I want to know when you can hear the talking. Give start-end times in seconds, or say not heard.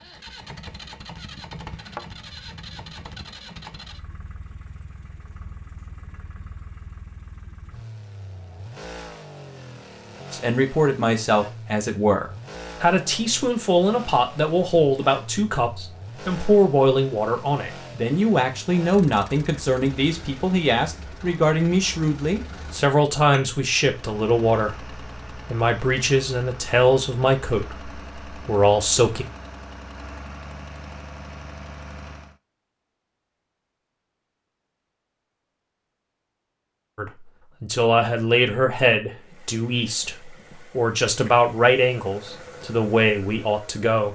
10.3-29.2, 37.0-44.0.